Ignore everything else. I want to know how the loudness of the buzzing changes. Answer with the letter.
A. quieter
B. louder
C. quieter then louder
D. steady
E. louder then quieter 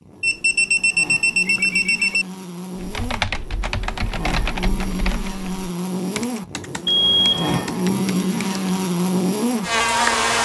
B.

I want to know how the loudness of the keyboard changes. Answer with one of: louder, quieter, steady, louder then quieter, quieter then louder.
quieter.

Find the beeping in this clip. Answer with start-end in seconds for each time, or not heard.
0.2-2.2, 6.8-7.7.